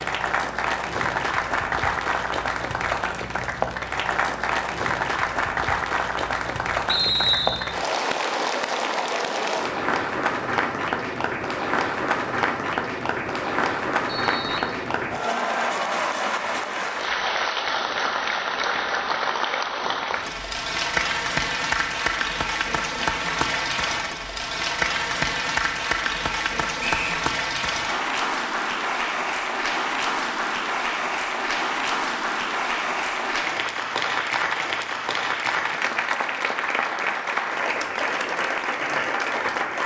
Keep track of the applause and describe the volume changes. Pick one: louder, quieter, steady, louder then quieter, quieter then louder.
steady.